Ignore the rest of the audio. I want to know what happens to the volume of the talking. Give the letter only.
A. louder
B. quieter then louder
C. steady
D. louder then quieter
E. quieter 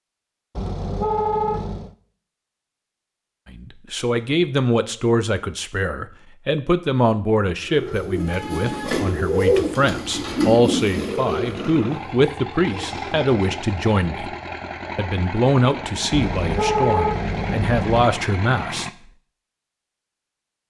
C.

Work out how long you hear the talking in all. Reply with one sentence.
The talking can be heard for 15 seconds in total.